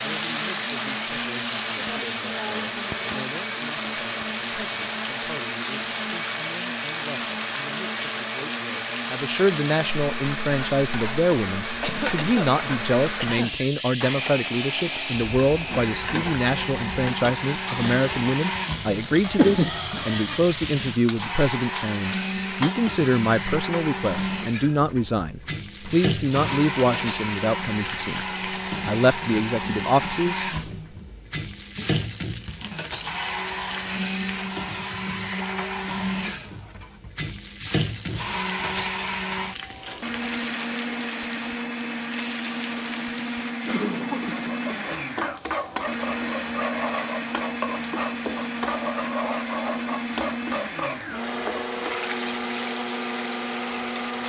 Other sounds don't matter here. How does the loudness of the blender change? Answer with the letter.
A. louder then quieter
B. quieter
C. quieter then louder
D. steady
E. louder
D.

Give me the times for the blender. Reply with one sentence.
The blender can be heard from 0.0 to 54.2 s.